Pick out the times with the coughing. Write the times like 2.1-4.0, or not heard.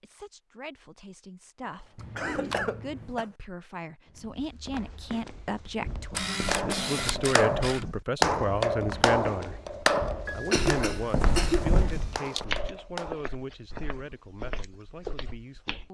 1.6-3.2, 10.2-11.7.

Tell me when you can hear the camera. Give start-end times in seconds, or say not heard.
1.9-3.2, 6.1-8.0, 11.8-12.4.